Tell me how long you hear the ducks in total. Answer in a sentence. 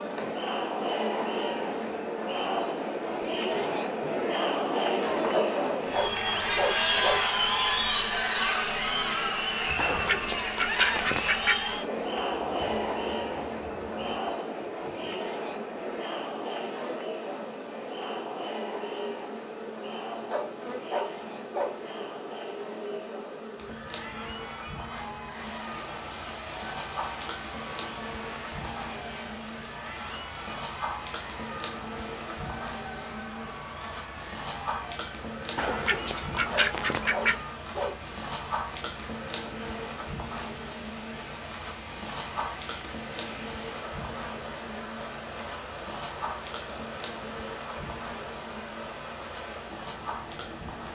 The ducks can be heard for 4 seconds in total.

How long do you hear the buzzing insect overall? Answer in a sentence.
The buzzing insect can be heard for 51 seconds in total.